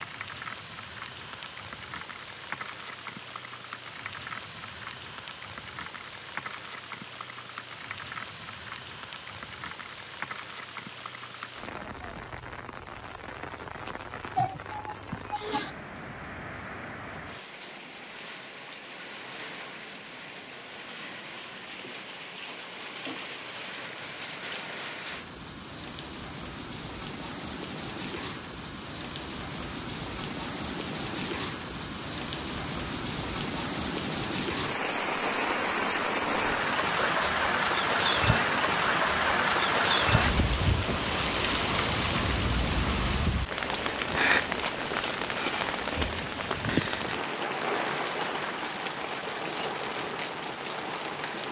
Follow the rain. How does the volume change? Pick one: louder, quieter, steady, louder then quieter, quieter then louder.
louder.